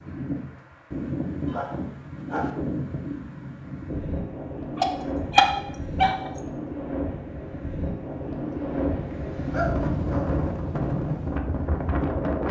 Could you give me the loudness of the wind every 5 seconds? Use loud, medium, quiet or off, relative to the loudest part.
medium, loud, loud.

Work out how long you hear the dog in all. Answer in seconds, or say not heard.
4 s.